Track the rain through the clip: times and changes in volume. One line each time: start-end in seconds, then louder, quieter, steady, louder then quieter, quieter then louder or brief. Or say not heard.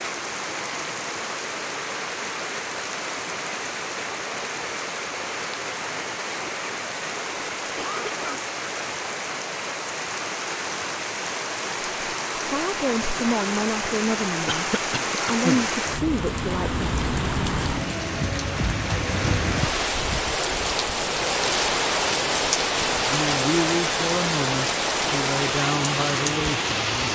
0.0-27.1 louder.